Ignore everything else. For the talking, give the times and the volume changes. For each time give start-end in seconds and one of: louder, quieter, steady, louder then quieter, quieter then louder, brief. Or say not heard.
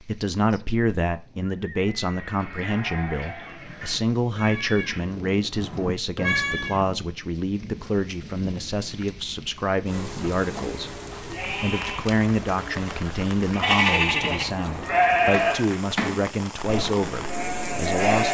0.0-18.2 steady.